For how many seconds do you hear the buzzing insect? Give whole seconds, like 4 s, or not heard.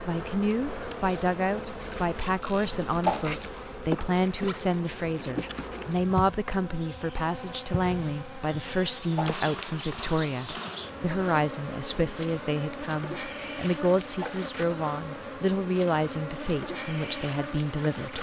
18 s.